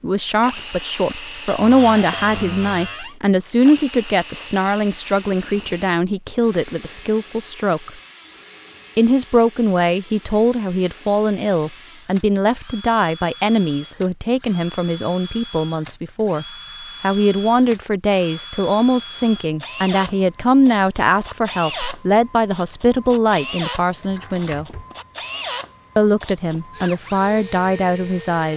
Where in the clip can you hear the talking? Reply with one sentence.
You can hear the talking from 0.0 to 7.9 s, from 8.9 to 24.6 s and from 25.9 to 28.5 s.